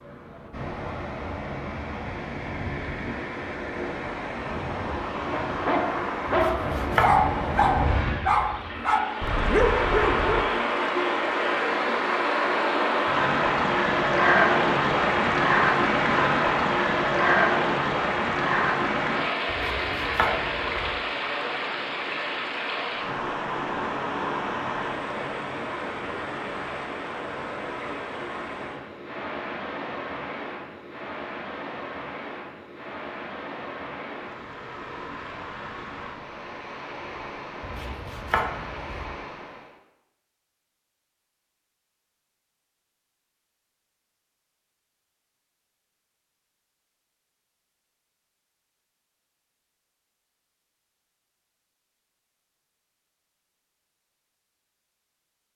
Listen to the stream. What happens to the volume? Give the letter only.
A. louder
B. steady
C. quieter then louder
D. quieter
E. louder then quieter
E.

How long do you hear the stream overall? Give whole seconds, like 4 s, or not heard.
40 s.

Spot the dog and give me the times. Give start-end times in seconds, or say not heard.
5.2-10.4.